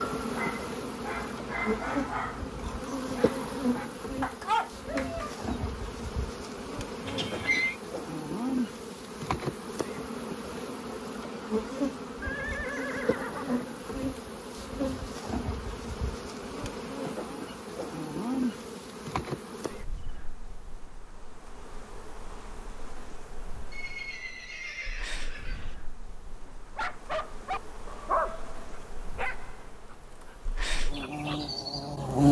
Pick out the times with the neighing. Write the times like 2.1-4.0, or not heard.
7.0-7.8, 12.2-13.7, 23.7-25.8.